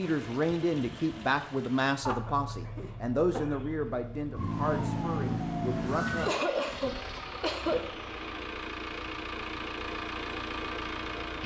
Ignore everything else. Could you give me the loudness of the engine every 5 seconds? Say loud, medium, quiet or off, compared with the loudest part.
medium, loud, loud.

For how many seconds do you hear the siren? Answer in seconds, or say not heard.
2 s.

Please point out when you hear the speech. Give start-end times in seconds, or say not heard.
0.0-6.5.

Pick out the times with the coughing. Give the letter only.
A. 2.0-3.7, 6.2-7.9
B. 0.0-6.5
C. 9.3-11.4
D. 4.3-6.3
A.